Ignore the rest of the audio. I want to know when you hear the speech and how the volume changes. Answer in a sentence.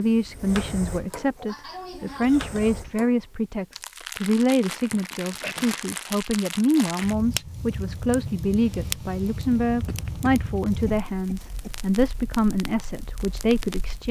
You can hear the speech from 0.0 to 14.0 s, at a steady volume.